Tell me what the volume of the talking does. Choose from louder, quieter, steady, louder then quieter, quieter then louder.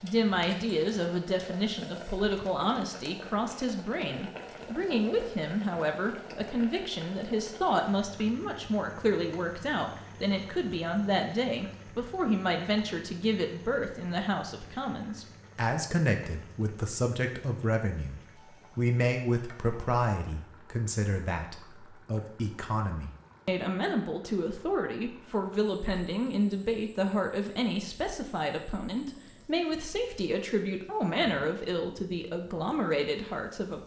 steady.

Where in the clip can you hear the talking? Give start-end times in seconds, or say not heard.
0.0-18.1, 18.8-33.8.